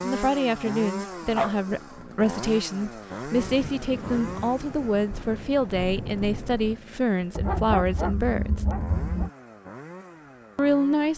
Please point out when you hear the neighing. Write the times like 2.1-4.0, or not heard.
not heard.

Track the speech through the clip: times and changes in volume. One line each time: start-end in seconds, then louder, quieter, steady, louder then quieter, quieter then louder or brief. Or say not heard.
0.0-8.7 steady
10.6-11.1 brief.